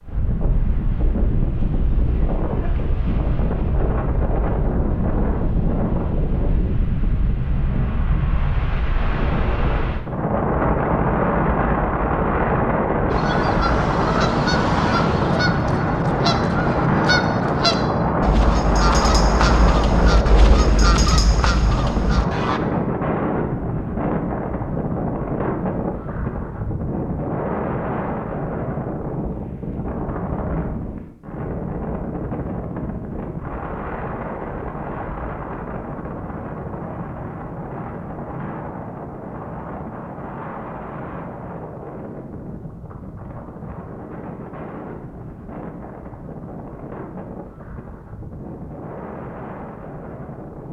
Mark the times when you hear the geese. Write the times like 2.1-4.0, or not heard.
13.1-22.6.